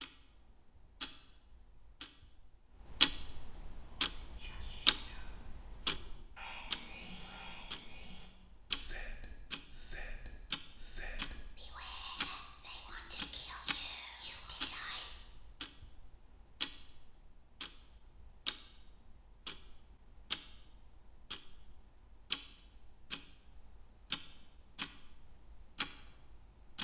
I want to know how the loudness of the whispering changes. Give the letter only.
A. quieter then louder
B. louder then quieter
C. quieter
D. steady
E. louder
E.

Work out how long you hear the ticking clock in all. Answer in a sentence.
You can hear the ticking clock for 27 seconds altogether.